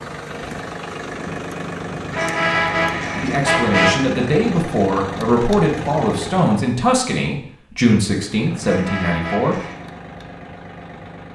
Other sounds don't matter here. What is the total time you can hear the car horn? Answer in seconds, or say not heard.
3 s.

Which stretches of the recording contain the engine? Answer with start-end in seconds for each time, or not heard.
0.0-6.6, 8.2-11.3.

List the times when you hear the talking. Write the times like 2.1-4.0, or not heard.
3.1-9.6.